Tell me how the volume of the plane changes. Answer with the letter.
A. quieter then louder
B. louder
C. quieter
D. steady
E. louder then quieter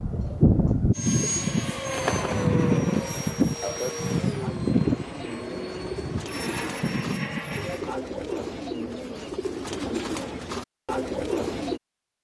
C.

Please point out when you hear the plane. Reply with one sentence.
The plane can be heard from 0.0 to 7.9 s.